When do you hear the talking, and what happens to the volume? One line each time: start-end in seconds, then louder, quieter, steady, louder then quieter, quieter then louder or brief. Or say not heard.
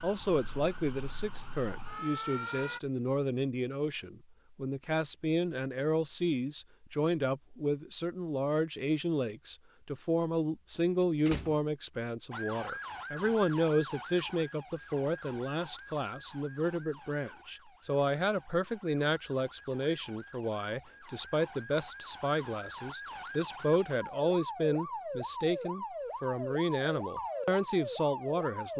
0.0-28.7 steady.